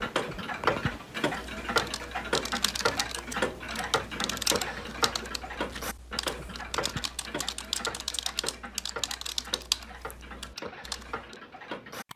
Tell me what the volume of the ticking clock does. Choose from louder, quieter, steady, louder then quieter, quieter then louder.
quieter.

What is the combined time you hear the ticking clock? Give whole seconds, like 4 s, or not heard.
12 s.